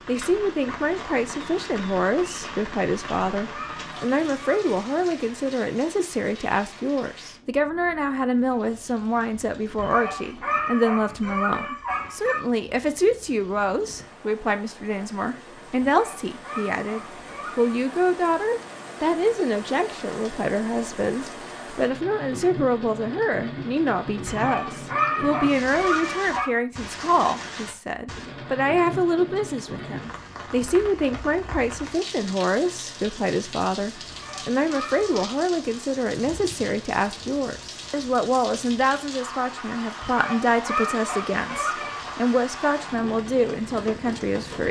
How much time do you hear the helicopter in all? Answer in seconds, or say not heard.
not heard.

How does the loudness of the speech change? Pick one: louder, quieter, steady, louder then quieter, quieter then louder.
steady.